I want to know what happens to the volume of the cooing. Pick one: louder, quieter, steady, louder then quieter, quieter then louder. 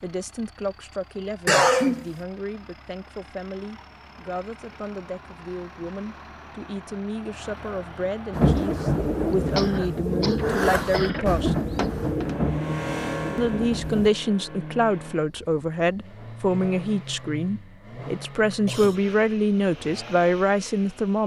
quieter.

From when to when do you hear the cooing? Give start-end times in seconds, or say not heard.
8.3-14.1.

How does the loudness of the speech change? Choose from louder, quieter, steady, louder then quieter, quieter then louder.
louder.